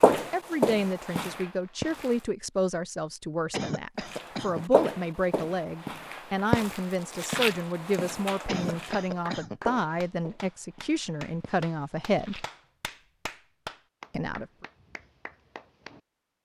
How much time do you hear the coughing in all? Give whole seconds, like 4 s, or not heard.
2 s.